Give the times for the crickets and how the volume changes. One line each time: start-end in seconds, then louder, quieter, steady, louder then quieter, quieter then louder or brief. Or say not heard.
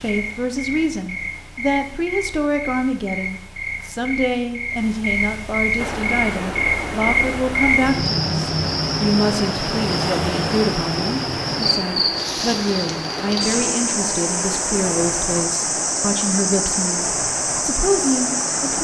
0.0-18.7 louder.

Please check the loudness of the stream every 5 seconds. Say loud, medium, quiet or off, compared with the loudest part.
off, loud, loud, loud.